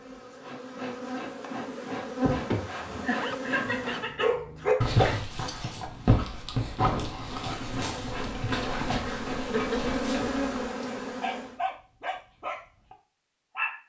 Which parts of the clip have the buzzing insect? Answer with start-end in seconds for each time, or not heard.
0.0-4.2, 7.5-11.6.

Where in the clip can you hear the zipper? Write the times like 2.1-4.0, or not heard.
3.1-4.0.